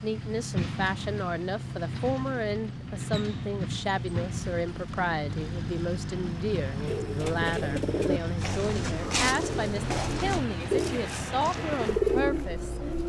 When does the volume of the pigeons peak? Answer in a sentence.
The volume of the pigeons peaks at 12 seconds.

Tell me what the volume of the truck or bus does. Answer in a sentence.
The loudness of the truck or bus stays about the same.